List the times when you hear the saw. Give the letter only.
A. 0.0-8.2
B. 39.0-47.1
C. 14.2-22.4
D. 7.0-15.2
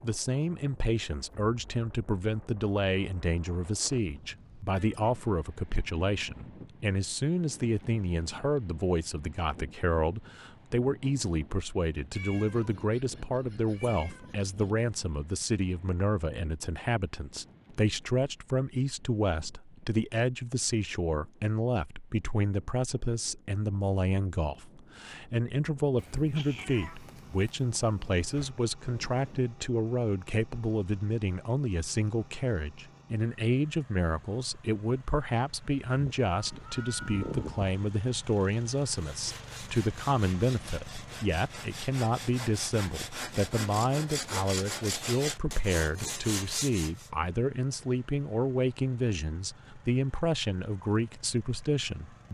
B.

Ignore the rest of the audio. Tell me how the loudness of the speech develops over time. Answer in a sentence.
The loudness of the speech stays about the same.